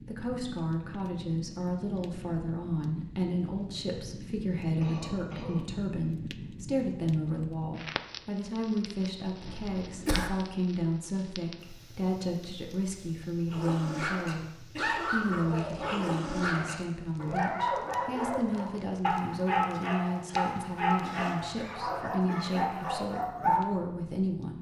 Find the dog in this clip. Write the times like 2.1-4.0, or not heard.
13.5-23.6.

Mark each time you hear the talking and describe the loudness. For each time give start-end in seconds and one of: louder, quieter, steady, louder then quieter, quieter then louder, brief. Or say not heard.
0.0-14.4 steady
15.1-24.5 steady.